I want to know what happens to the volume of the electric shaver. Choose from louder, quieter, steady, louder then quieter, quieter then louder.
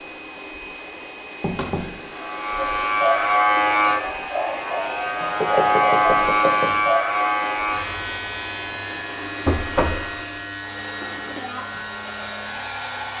quieter.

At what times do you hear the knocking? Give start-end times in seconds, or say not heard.
1.4-1.9, 5.4-6.8, 9.4-10.1.